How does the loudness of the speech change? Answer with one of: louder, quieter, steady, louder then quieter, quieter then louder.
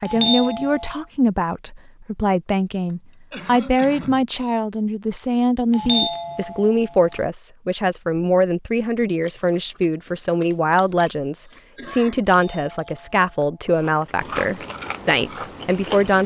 steady.